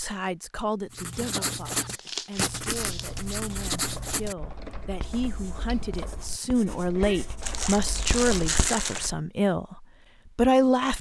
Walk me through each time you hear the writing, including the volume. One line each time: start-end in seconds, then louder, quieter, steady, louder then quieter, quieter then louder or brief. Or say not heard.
0.9-9.2 quieter then louder.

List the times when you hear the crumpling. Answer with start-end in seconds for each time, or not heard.
1.8-3.2, 7.4-9.1.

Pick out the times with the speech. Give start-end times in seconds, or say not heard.
0.0-10.9.